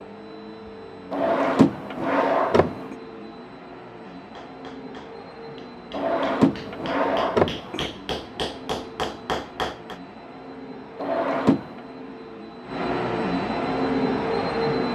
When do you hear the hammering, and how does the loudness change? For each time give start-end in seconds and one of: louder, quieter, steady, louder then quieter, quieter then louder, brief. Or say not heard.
4.2-10.0 louder.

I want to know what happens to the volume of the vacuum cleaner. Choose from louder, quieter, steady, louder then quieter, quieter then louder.
louder.